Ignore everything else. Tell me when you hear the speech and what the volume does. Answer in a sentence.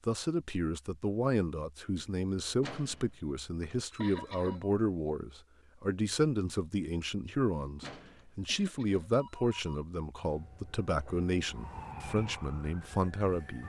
The speech can be heard from 0.1 to 13.6 s, at a steady volume.